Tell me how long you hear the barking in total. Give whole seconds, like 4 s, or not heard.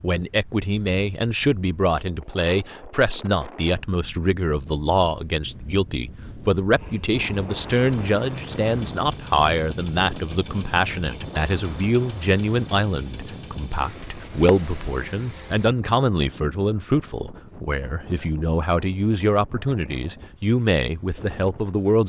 not heard.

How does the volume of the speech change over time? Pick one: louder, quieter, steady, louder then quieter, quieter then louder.
steady.